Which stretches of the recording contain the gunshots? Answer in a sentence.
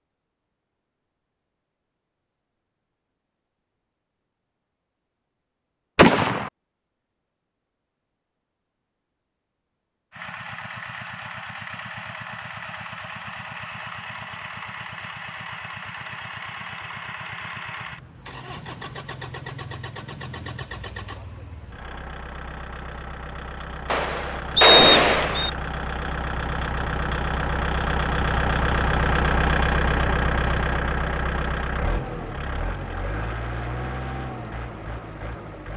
You can hear the gunshots from 6.0 to 6.5 s and from 23.9 to 25.5 s.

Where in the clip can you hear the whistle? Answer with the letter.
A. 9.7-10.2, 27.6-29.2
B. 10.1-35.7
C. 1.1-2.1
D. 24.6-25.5
D.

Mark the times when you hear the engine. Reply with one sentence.
You can hear the engine from 10.1 to 35.7 s.